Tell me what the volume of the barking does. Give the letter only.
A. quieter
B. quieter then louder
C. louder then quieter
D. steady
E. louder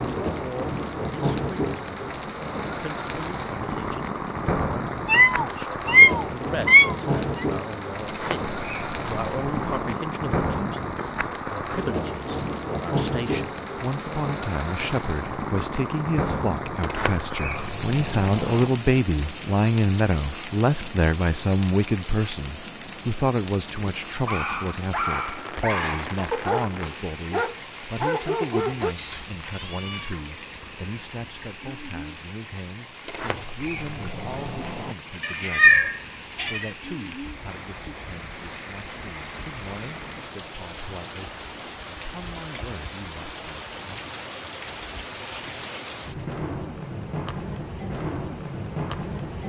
D.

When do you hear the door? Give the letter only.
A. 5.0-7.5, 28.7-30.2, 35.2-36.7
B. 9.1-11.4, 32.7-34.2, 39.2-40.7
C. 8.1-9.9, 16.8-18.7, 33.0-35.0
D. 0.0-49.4
C.